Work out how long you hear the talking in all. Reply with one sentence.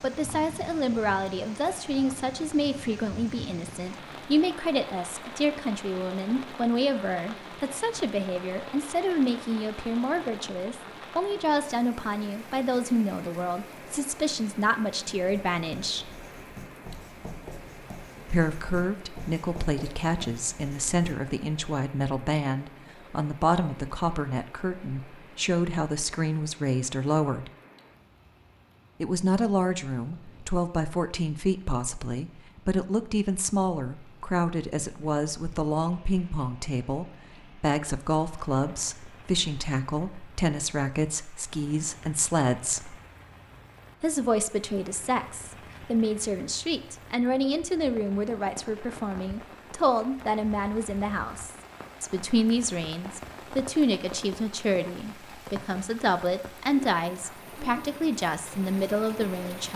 The talking can be heard for 55 seconds in total.